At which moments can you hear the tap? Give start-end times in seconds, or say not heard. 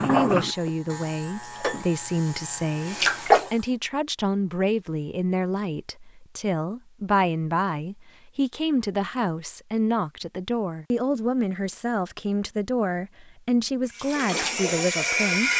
1.4-3.5, 13.8-15.5.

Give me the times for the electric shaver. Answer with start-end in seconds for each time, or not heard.
0.0-3.8.